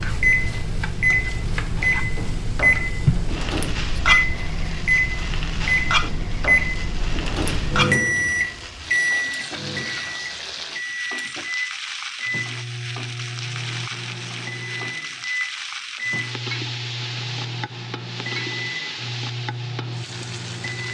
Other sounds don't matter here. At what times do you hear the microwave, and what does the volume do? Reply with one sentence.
You can hear the microwave from 0.0 to 20.8 s, getting quieter.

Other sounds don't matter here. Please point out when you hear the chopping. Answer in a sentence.
The chopping can't be heard in this clip.